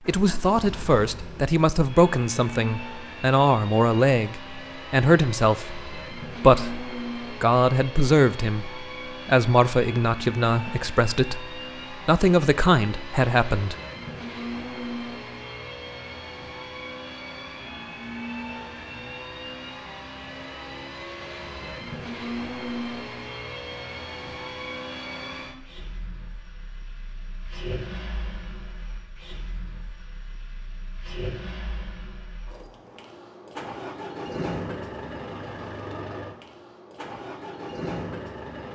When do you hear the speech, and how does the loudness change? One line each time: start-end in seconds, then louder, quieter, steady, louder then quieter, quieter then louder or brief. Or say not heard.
0.1-13.8 steady.